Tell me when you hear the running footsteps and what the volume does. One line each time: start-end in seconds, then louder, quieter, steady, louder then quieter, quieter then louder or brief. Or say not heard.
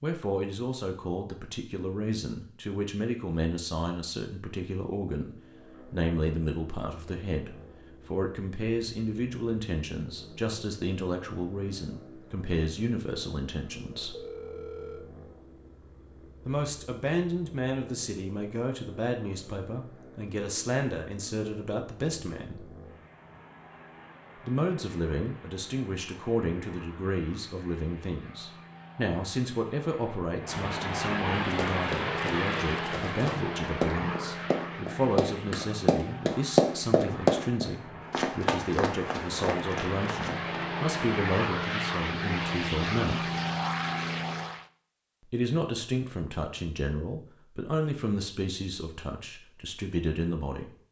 31.4-40.5 louder then quieter.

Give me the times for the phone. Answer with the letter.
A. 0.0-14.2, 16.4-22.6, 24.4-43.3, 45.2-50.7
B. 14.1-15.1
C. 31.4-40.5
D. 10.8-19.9
B.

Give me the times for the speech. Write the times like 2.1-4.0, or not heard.
0.0-14.2, 16.4-22.6, 24.4-43.3, 45.2-50.7.